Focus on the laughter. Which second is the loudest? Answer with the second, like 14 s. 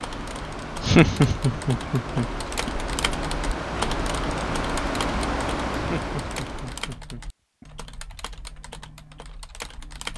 1 s.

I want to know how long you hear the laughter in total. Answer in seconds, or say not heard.
4 s.